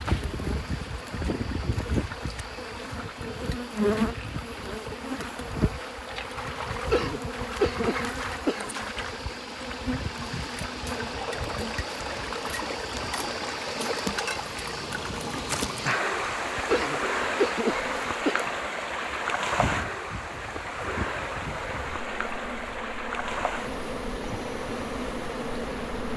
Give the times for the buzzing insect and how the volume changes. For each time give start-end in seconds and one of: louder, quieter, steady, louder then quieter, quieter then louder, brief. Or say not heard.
0.0-26.1 quieter.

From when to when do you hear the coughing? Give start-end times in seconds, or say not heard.
6.9-8.7, 16.6-18.5.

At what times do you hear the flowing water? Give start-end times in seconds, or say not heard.
0.0-26.1.